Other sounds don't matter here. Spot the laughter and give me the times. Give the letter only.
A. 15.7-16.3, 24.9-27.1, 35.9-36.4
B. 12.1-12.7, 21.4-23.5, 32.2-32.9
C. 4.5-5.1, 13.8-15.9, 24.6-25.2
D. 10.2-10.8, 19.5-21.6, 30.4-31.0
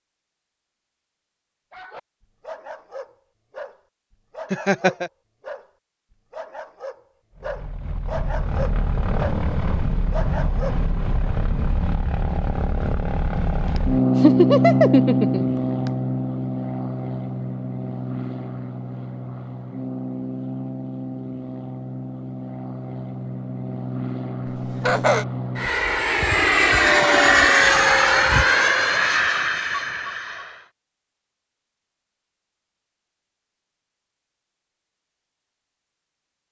C.